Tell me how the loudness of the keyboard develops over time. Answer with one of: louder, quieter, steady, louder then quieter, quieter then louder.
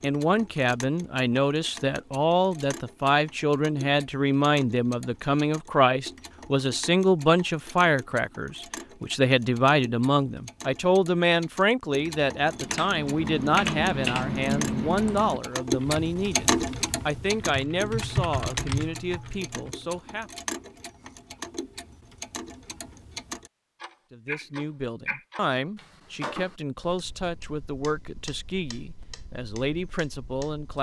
quieter then louder.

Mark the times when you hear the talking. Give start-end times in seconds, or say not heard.
0.0-20.3, 24.1-30.7.